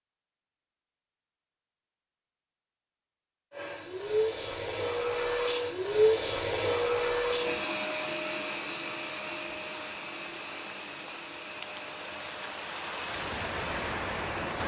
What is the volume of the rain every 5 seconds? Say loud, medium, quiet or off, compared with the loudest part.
off, medium, loud.